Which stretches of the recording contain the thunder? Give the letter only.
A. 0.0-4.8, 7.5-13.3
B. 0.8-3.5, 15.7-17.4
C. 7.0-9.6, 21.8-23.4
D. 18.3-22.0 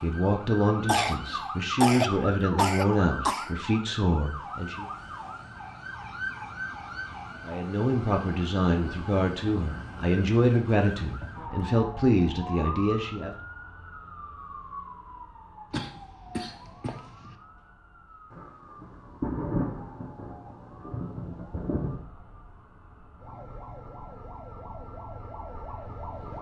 D.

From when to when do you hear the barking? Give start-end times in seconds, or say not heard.
not heard.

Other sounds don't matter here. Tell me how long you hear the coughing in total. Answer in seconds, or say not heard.
4 s.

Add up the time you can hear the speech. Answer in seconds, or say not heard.
11 s.